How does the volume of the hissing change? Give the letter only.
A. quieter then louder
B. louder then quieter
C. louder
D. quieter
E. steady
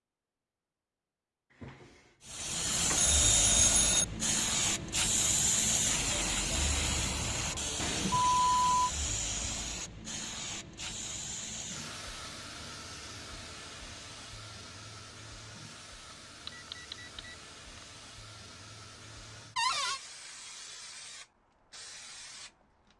D.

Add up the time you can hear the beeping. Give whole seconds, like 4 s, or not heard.
3 s.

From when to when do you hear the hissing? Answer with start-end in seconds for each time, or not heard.
2.2-22.9.